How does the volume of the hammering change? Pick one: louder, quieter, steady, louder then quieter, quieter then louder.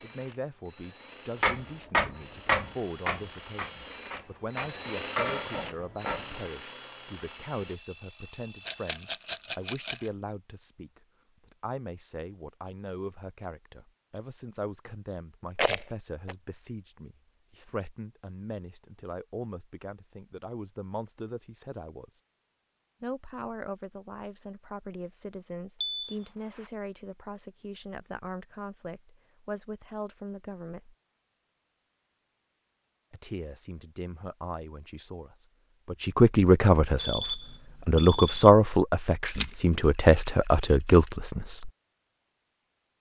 quieter then louder.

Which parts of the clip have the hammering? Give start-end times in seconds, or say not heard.
1.4-6.2.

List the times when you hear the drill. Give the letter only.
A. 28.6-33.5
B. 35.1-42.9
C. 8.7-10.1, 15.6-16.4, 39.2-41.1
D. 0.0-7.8
D.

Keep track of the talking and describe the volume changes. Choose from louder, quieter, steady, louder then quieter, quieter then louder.
louder.